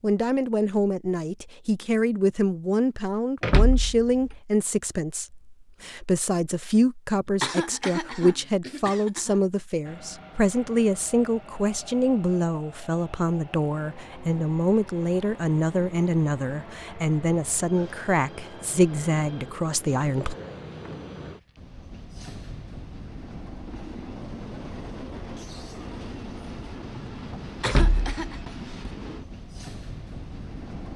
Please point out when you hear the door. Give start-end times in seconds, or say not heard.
3.4-4.3, 27.6-28.6.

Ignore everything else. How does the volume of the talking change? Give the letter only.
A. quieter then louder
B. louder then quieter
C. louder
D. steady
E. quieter
D.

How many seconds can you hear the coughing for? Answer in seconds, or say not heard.
3 s.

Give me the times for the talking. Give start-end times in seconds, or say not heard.
0.0-20.4.